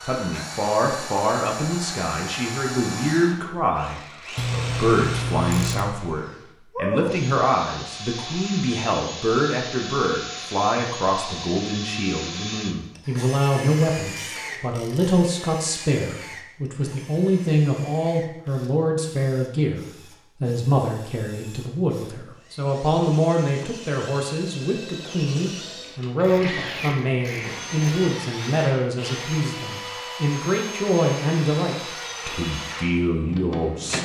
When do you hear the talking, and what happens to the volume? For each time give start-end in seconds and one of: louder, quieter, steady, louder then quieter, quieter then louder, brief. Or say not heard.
0.1-33.9 steady.